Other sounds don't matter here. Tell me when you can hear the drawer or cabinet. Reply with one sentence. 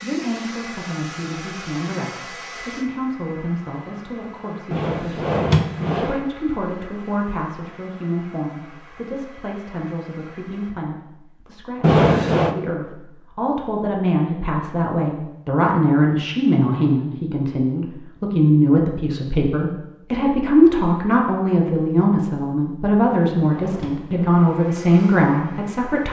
The drawer or cabinet can be heard from 4.7 to 6.2 s, from 11.8 to 12.6 s and from 23.0 to 24.3 s.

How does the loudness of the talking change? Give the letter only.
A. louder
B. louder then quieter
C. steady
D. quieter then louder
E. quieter
A.